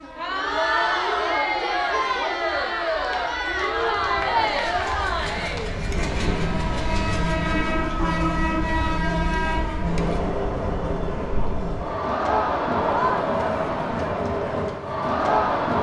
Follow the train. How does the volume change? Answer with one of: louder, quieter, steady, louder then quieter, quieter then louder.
louder then quieter.